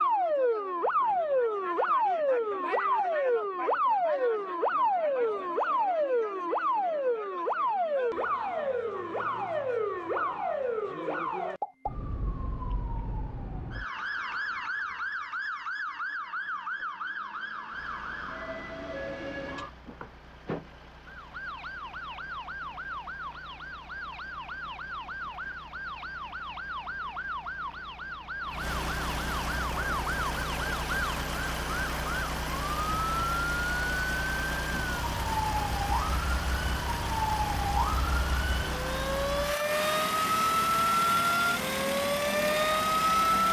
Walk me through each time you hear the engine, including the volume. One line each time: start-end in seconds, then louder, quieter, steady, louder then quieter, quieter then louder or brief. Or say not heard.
17.7-43.4 louder.